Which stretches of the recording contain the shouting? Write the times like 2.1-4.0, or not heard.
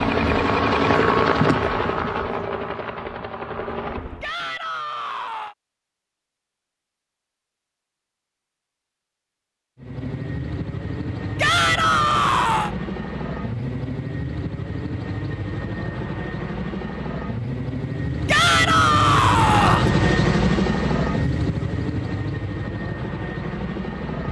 4.2-5.5, 11.3-12.7, 18.2-19.9.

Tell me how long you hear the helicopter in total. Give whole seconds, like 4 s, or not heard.
19 s.